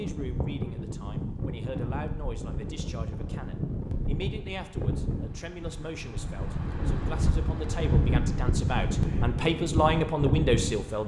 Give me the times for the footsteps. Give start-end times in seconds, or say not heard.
not heard.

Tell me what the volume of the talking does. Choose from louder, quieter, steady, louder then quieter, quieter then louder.
louder.